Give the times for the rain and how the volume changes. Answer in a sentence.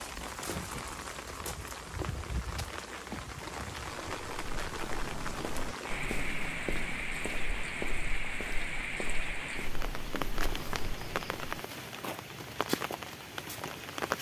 The rain can be heard from 0.0 to 14.1 s, at a steady volume.